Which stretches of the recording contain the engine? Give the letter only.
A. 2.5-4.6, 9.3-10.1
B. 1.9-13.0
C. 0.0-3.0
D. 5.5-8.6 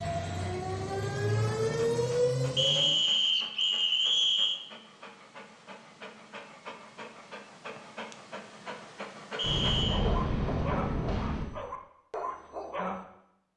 C.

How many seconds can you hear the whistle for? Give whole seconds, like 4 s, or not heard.
3 s.